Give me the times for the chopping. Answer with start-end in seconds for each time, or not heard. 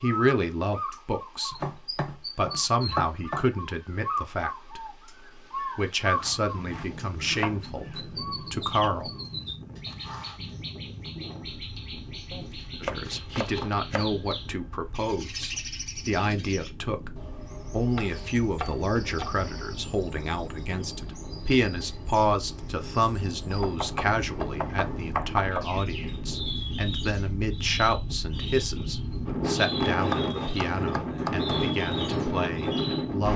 1.5-3.5, 6.2-8.0, 12.3-14.1, 17.9-19.8, 23.5-25.6, 30.1-31.5.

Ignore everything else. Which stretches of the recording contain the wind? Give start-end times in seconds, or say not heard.
6.0-33.3.